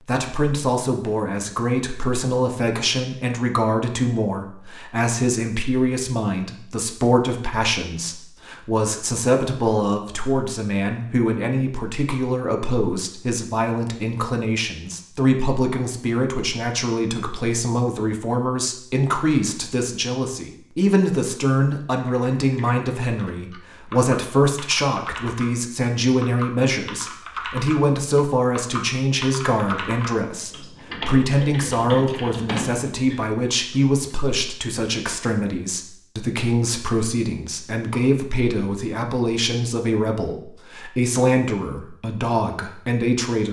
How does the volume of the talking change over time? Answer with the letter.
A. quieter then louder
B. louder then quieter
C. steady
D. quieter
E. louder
C.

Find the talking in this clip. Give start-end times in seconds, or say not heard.
0.1-43.4.